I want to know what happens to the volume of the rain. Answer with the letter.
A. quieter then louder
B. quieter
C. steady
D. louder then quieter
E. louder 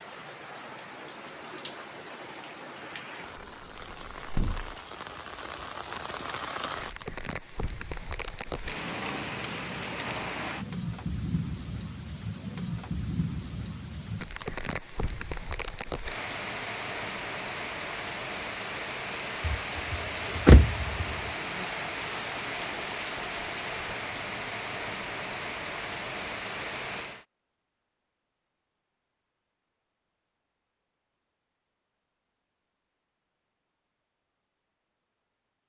E.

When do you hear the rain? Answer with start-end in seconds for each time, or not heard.
0.0-27.2.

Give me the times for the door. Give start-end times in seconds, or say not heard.
3.4-4.8, 19.4-21.1.